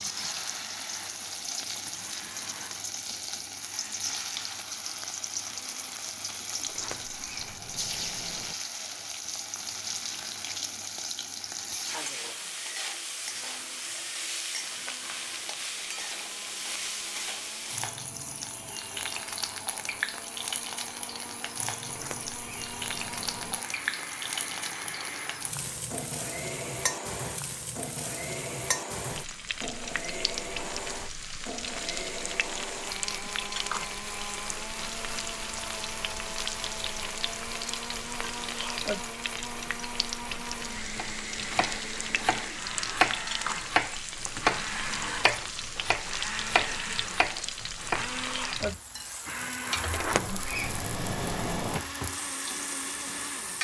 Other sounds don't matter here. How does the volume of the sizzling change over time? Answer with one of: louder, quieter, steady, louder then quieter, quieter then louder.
steady.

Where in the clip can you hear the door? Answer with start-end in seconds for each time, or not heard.
6.7-8.6, 21.9-23.6, 49.9-51.8.